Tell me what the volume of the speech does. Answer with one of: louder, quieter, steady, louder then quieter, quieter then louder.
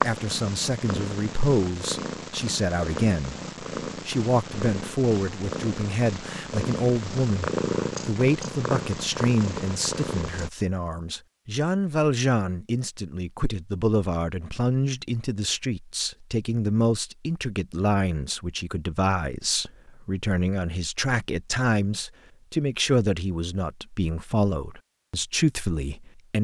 steady.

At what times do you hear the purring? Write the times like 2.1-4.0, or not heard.
0.0-10.5.